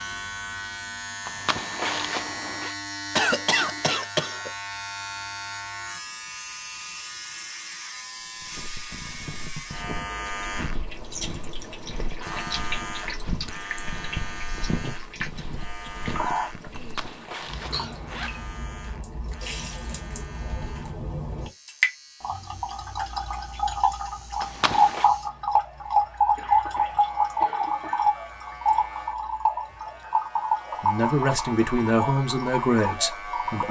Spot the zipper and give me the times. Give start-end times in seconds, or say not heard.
1.2-2.8, 16.8-18.5, 24.4-25.1.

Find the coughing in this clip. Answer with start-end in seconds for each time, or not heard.
3.1-4.5, 16.7-17.9, 26.2-28.1.